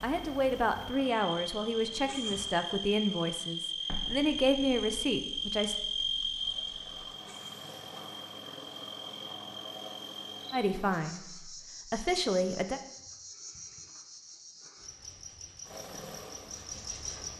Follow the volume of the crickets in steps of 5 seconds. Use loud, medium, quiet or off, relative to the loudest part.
loud, loud, medium, medium.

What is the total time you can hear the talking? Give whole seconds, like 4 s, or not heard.
8 s.